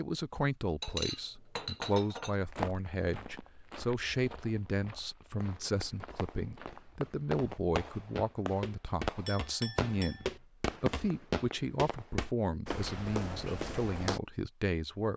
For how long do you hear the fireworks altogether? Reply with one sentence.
You can hear the fireworks for 7 seconds altogether.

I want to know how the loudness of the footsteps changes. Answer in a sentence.
The volume of the footsteps goes down, then up.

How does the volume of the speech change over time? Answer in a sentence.
The loudness of the speech stays about the same.